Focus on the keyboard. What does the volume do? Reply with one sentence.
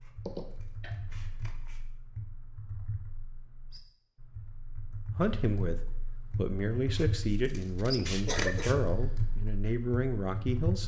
The loudness of the keyboard goes up.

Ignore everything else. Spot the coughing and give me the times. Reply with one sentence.
You can hear the coughing from 0.2 to 0.9 s and from 8.2 to 8.8 s.